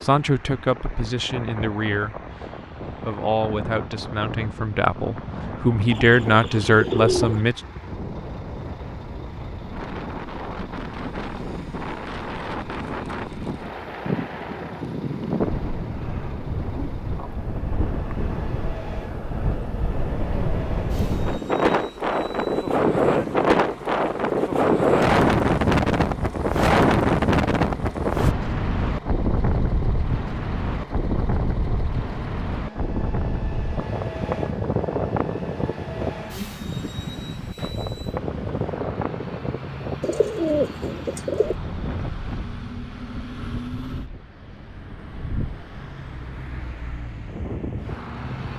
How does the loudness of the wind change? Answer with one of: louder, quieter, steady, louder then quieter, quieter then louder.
louder then quieter.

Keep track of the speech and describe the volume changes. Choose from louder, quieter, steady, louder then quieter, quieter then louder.
louder.